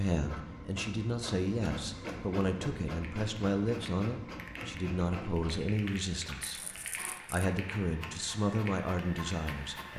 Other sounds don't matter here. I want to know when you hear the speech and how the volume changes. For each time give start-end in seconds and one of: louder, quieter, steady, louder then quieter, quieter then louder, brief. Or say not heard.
0.0-9.9 steady.